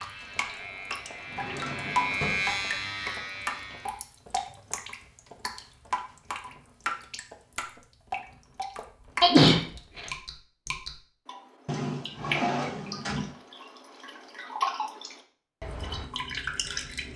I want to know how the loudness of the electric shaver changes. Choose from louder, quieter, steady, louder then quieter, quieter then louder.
louder then quieter.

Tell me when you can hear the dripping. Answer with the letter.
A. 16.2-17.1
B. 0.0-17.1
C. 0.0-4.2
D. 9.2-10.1
B.